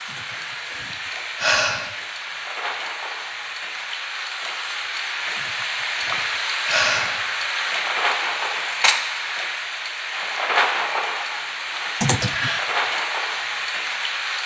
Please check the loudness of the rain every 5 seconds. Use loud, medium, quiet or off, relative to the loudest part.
medium, loud, loud.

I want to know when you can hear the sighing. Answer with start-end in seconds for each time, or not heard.
0.1-1.9, 5.3-7.2, 12.0-12.7.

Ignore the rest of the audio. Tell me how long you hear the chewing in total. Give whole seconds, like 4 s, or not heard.
not heard.